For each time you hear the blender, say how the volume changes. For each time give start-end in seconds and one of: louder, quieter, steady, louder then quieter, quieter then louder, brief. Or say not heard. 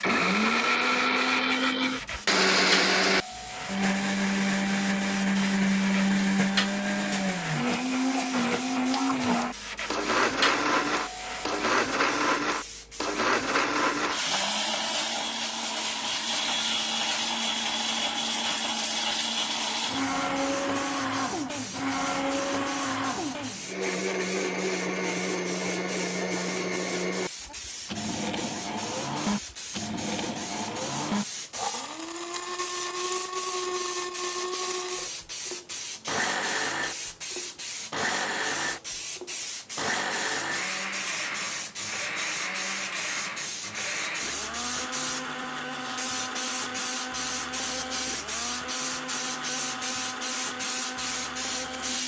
0.0-52.0 quieter.